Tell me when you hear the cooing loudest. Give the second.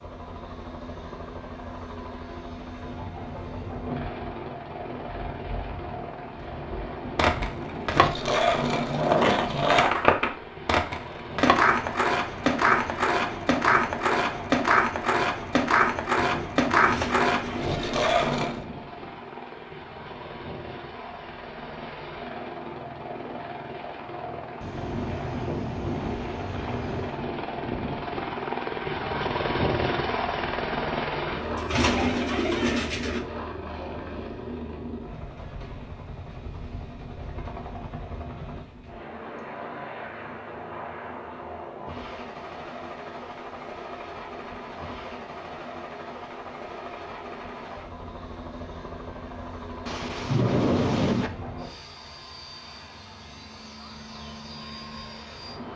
32 s.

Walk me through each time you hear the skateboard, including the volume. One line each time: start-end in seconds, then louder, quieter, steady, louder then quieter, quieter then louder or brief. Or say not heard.
7.2-18.6 steady.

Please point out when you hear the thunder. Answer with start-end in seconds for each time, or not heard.
3.4-7.5, 24.6-27.2, 49.9-51.3.